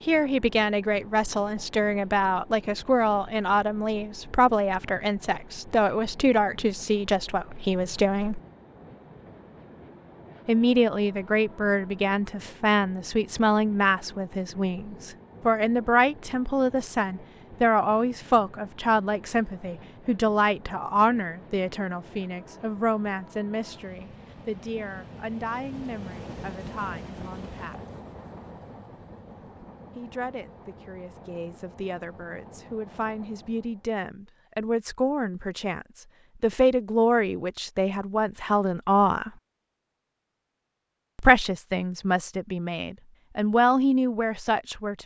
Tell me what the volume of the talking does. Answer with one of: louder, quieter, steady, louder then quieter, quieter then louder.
quieter then louder.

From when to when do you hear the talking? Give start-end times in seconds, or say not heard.
0.1-8.4, 10.4-27.9, 29.9-39.3, 41.1-45.0.